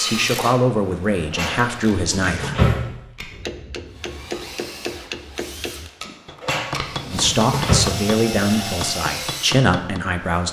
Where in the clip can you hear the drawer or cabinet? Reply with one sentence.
The drawer or cabinet can be heard from 1.3 to 2.9 s and from 6.4 to 7.8 s.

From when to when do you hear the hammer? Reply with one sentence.
The hammer can be heard from 3.3 to 10.0 s.